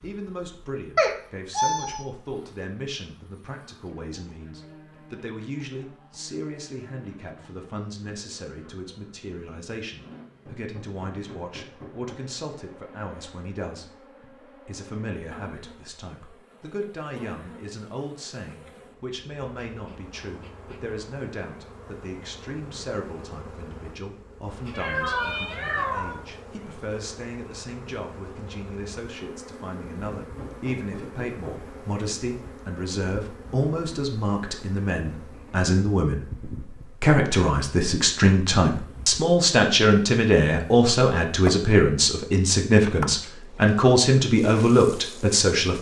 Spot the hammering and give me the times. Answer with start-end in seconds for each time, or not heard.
10.4-12.3, 30.1-31.8.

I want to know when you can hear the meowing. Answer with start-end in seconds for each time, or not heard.
0.9-2.0, 24.7-26.1.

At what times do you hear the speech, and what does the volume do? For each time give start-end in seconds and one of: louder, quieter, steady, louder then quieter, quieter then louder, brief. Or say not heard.
0.0-45.7 louder.